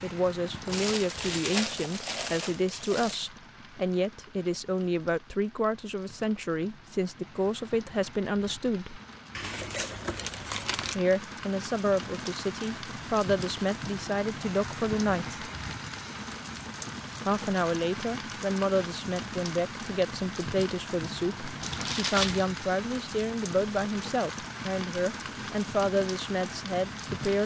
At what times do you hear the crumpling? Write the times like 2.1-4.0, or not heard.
0.7-3.3, 9.3-10.9, 21.6-22.4.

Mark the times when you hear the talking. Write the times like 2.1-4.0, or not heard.
0.0-9.0, 10.9-15.4, 17.2-27.4.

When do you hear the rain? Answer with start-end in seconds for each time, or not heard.
0.0-27.4.